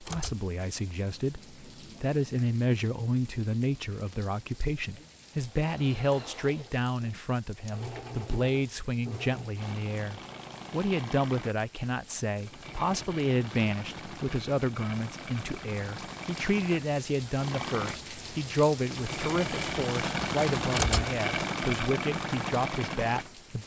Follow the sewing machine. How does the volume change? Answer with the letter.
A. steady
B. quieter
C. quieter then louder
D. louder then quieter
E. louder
E.